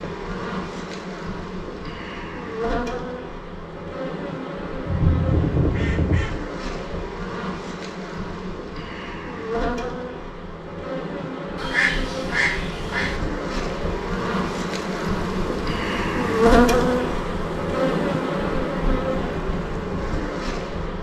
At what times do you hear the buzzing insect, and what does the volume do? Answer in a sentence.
You can hear the buzzing insect from 0.0 to 20.9 s, getting louder.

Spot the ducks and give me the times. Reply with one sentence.
The ducks can be heard from 4.8 to 6.3 s and from 11.6 to 13.2 s.